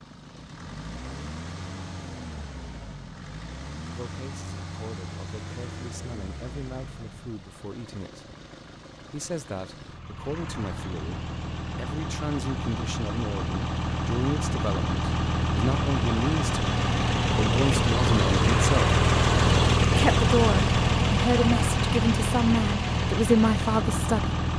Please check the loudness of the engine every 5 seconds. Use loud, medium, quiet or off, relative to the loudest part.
quiet, quiet, medium, loud, loud.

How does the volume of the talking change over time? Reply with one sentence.
The volume of the talking goes up.